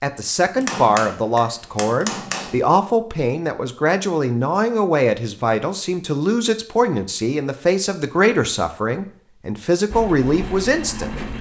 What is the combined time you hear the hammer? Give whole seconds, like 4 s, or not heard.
2 s.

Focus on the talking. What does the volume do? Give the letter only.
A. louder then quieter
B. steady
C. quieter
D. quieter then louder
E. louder
B.